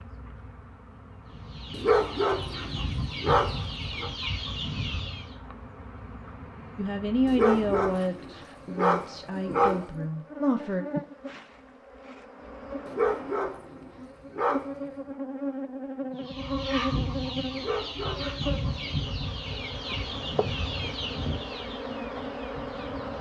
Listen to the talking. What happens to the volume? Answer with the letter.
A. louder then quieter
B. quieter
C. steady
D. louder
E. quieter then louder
B.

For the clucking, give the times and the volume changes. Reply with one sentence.
You can hear the clucking from 1.2 to 5.3 s, getting louder; and from 16.1 to 23.1 s, getting quieter.